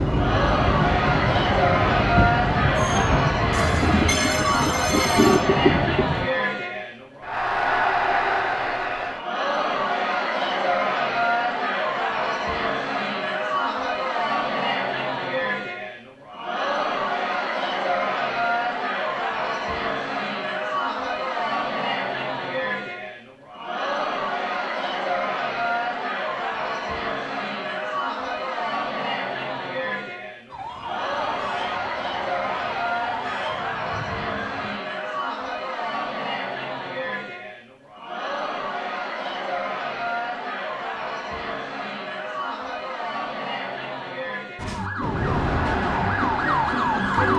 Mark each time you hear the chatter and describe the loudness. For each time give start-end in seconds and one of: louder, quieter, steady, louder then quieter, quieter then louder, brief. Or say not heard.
0.0-47.3 quieter.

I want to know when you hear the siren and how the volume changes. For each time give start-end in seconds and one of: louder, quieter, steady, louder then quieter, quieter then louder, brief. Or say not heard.
30.5-34.8 steady
44.5-47.3 brief.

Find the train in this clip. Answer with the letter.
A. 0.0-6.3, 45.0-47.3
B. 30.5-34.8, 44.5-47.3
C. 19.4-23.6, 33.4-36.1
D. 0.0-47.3
A.